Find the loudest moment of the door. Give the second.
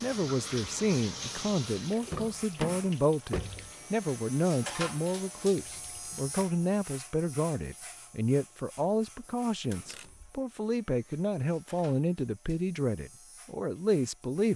3 s.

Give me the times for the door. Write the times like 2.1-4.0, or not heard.
2.0-3.7, 9.7-10.4.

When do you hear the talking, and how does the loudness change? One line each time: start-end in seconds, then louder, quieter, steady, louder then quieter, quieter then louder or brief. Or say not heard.
0.0-14.5 steady.